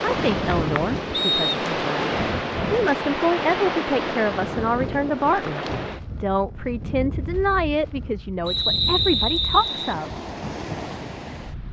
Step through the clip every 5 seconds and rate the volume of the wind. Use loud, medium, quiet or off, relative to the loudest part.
loud, medium, medium.